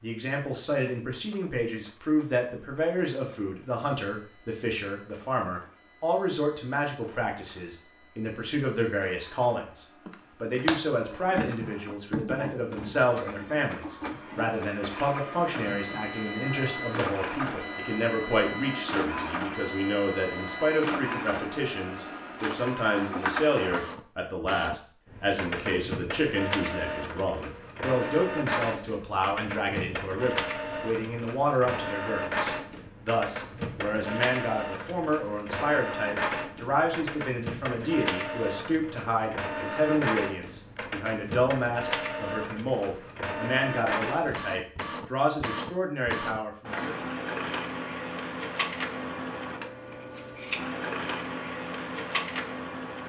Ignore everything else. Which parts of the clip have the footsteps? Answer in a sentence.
You can't hear the footsteps here.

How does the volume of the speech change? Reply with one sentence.
The volume of the speech stays about the same.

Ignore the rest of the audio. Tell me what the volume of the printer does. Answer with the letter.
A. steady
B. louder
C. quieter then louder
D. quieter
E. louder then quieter
B.